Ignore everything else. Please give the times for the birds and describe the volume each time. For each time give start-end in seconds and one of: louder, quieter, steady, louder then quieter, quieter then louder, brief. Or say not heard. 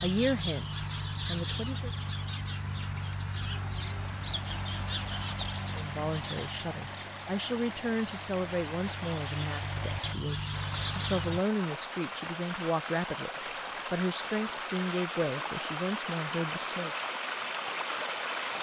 0.0-11.4 quieter then louder.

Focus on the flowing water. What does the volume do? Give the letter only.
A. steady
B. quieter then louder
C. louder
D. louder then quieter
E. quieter
C.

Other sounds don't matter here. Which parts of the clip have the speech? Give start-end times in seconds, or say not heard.
0.0-1.9, 5.7-13.3, 13.9-16.9.